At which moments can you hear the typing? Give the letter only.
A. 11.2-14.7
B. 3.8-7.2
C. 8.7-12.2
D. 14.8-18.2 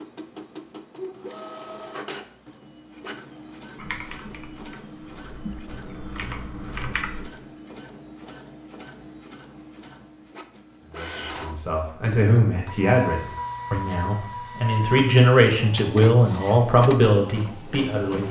B.